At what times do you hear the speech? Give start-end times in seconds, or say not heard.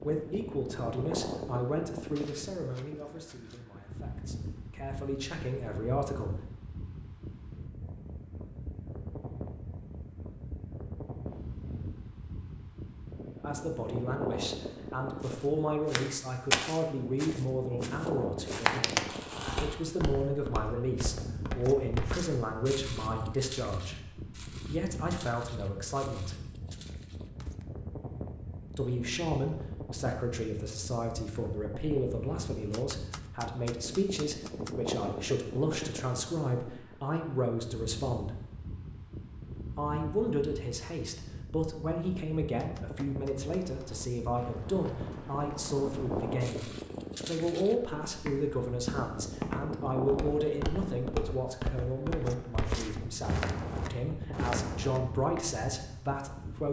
0.0-6.3, 13.4-26.4, 28.7-38.4, 39.8-46.6, 47.2-56.6.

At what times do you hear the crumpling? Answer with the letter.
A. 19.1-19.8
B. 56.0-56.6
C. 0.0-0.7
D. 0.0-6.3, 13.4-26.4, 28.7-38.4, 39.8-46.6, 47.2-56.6
A.